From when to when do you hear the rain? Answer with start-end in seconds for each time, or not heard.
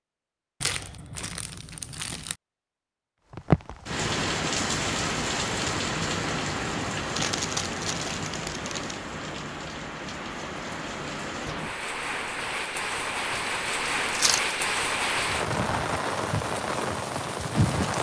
3.3-17.9.